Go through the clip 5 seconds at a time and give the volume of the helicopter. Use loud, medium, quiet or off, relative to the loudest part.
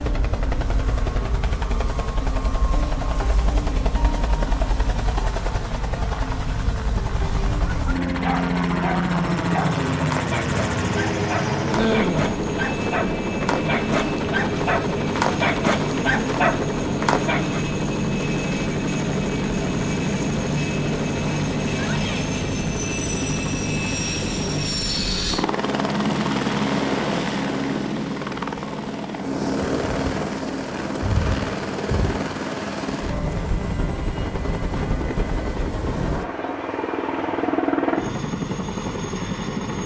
medium, loud, loud, loud, loud, loud, loud, loud.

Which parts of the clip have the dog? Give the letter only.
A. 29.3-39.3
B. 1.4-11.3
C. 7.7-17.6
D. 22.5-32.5
C.